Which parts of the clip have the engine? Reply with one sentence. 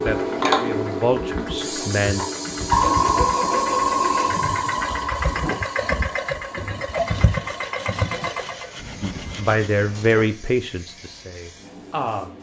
You can hear the engine from 0.1 to 8.7 s.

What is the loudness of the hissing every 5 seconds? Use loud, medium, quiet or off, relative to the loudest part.
loud, quiet, quiet.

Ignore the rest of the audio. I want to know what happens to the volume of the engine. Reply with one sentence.
The volume of the engine goes up.